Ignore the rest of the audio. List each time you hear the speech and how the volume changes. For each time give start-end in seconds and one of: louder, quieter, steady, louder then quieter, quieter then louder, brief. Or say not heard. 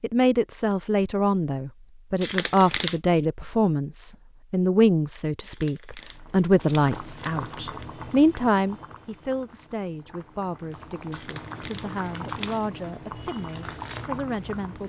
0.0-14.8 quieter.